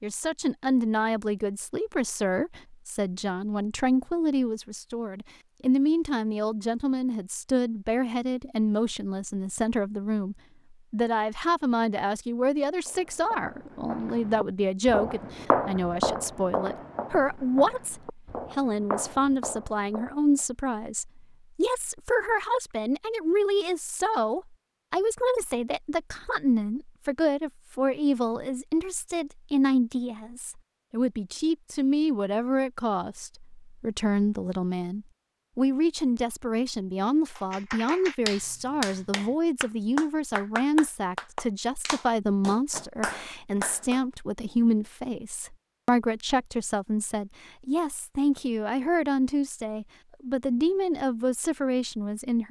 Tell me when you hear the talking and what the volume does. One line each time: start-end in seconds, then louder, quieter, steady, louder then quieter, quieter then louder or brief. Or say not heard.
0.0-52.4 steady.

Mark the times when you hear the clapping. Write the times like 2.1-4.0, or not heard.
37.4-44.0.